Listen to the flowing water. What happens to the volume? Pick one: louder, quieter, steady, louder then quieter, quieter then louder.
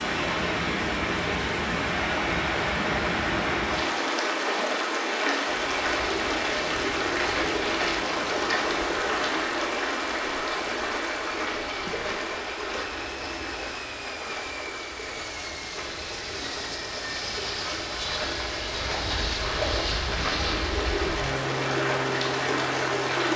quieter then louder.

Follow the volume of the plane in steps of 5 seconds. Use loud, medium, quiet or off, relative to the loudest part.
medium, medium, medium, loud, loud.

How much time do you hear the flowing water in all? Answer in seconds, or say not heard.
23 s.